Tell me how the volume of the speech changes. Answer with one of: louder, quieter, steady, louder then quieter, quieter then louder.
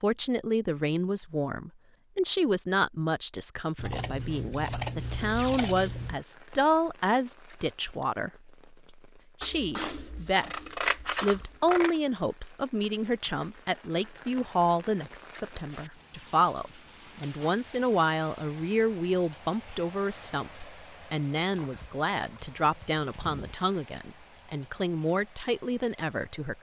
steady.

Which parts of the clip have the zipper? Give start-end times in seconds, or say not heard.
not heard.